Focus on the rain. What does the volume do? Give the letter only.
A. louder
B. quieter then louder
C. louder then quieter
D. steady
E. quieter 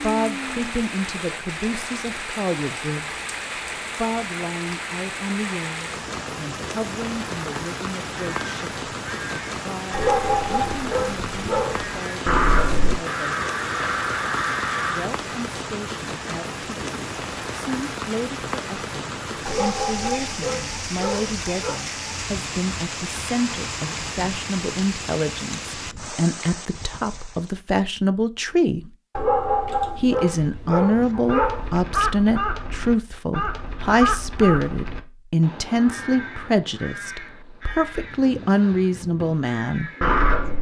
D.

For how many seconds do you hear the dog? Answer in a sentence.
The dog can be heard for 7 seconds in total.